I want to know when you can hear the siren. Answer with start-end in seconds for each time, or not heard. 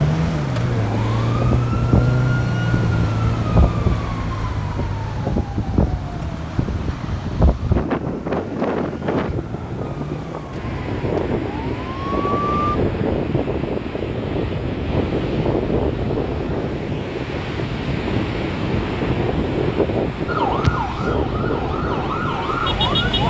0.0-12.8, 20.2-23.2.